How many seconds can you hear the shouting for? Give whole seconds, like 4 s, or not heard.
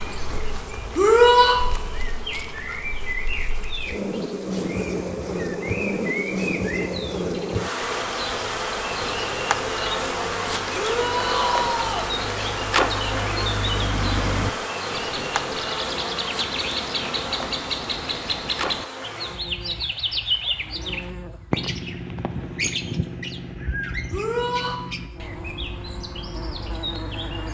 3 s.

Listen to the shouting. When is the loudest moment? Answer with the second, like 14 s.
1 s.